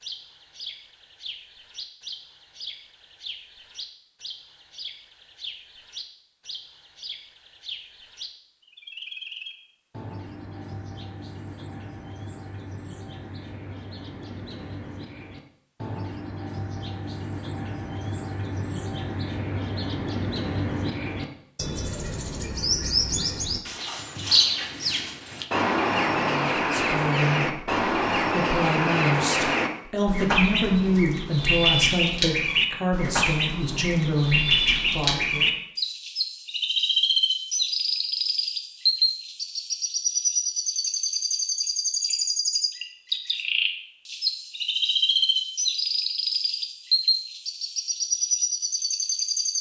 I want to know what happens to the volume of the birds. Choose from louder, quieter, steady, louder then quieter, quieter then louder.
louder.